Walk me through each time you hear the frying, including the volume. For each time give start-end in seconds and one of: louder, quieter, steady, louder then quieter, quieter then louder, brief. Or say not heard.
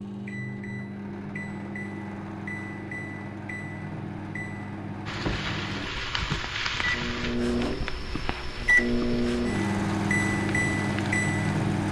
5.0-11.7 quieter.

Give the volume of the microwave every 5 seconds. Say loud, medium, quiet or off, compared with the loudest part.
medium, loud, loud.